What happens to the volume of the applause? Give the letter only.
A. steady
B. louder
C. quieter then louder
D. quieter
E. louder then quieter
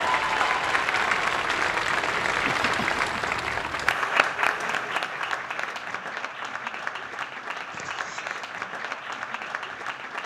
D.